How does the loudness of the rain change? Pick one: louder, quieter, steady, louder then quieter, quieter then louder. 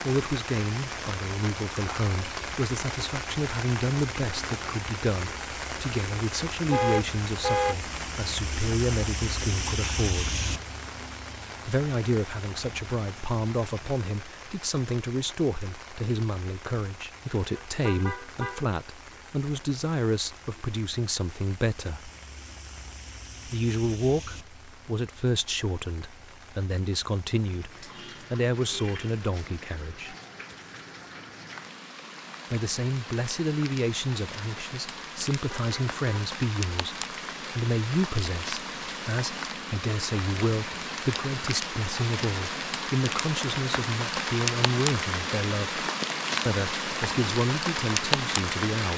quieter then louder.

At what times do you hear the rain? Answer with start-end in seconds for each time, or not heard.
0.0-48.9.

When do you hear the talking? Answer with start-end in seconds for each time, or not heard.
0.0-10.3, 11.7-22.1, 23.4-30.1, 32.5-45.9, 46.5-48.9.